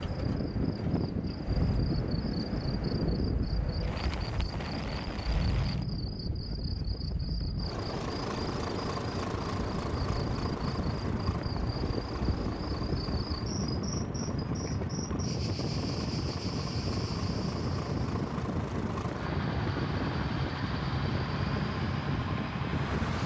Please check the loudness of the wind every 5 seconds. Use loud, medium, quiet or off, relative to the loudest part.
loud, medium, loud, loud, loud.